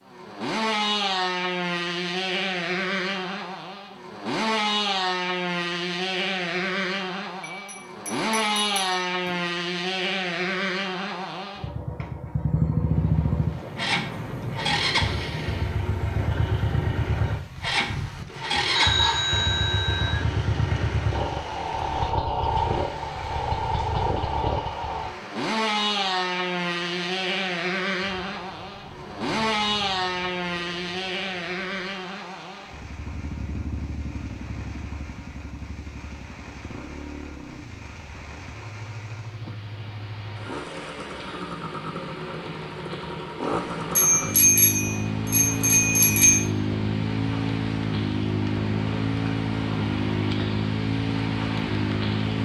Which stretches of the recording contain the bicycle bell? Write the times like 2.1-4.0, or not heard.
7.4-9.4, 18.7-20.2, 44.0-46.5.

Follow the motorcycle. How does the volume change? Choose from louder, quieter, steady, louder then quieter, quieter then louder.
quieter then louder.